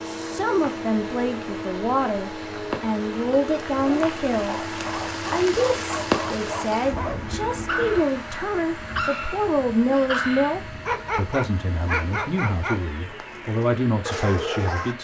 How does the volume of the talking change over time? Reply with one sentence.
The volume of the talking stays about the same.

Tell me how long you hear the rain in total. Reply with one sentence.
The rain can be heard for 15 seconds in total.